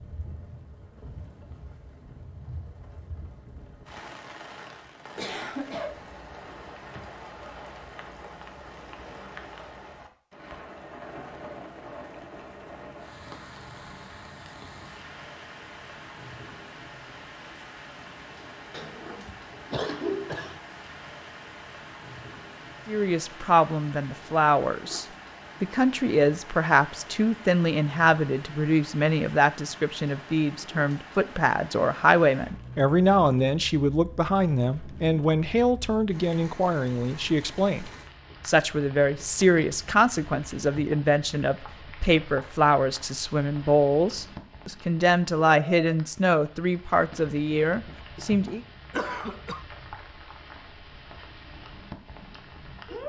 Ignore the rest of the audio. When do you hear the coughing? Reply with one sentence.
The coughing can be heard from 5.2 to 6.0 s, from 18.7 to 20.6 s and from 48.9 to 49.6 s.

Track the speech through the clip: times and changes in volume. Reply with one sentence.
The speech can be heard from 22.9 to 48.6 s, at a steady volume.